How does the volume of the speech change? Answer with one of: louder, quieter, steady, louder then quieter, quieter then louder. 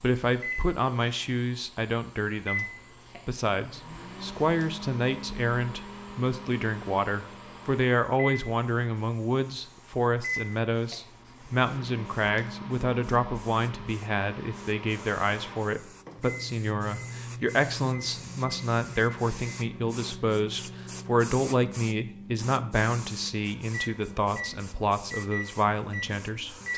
steady.